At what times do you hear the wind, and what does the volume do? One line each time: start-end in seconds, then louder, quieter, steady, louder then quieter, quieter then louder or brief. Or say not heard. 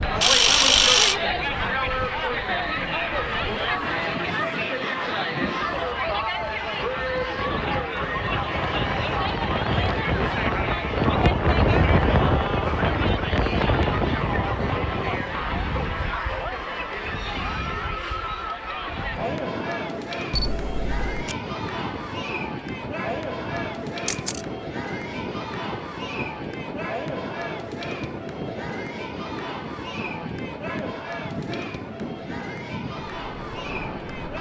0.0-34.3 louder then quieter.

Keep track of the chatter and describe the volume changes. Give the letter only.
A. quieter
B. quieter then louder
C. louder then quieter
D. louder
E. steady
A.